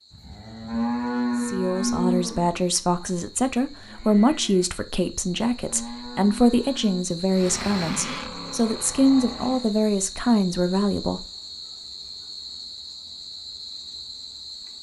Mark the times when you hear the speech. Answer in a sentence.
The speech can be heard from 1.4 to 11.2 s.